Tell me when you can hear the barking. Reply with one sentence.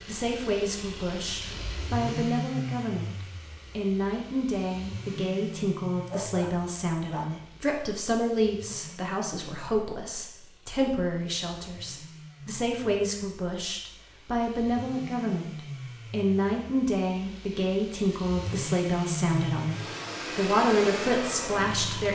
You can hear the barking from 6.0 to 7.5 s.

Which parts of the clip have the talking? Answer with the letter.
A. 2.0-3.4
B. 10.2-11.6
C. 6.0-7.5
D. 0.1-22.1
D.